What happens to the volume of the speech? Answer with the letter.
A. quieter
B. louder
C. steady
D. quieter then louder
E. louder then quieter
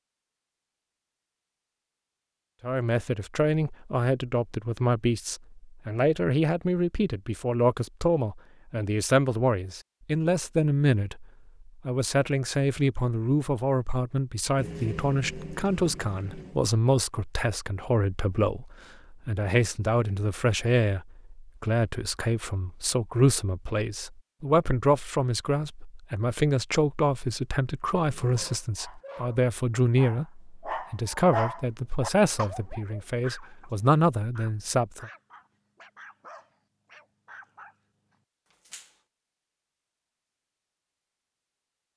C.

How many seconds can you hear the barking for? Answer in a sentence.
The barking can be heard for 11 seconds in total.